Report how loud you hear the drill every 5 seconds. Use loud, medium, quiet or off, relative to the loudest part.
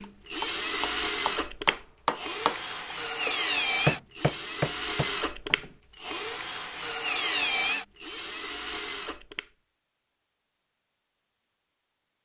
loud, loud, off.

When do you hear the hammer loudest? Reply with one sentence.
The loudest moment of the hammer is at 4 seconds.